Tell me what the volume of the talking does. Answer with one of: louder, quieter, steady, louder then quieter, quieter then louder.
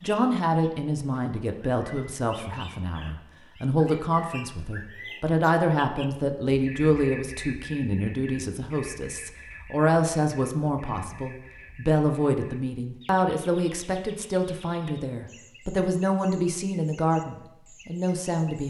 steady.